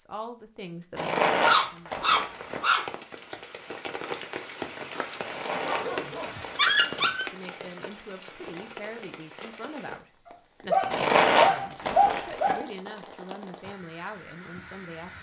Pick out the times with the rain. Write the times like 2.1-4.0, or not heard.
2.2-15.1.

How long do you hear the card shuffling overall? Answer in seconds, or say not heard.
5 s.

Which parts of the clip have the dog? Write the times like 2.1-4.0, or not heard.
1.4-2.9, 5.7-7.2, 10.7-12.7.